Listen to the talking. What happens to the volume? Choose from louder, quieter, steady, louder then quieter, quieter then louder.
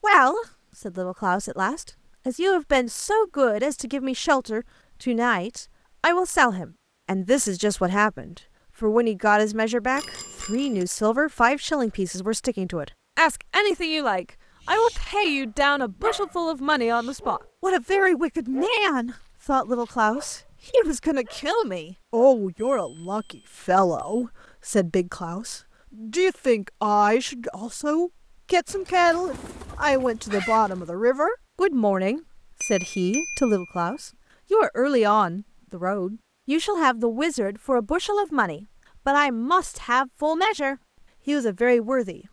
steady.